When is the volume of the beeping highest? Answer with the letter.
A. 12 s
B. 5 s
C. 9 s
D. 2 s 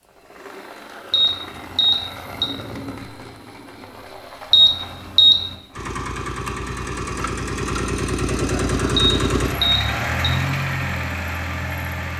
B.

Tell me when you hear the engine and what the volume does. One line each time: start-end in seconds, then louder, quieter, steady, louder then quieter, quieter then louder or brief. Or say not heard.
0.0-12.1 louder.